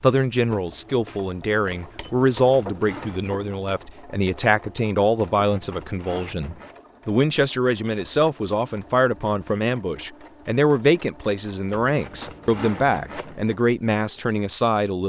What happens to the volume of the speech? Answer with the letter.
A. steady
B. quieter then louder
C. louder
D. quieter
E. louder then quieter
A.